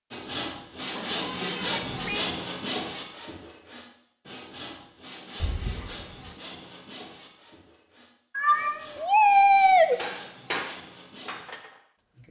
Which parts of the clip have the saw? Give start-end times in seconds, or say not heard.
0.1-11.4.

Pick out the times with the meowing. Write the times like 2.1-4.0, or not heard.
0.9-2.4, 5.4-6.3, 8.3-10.0.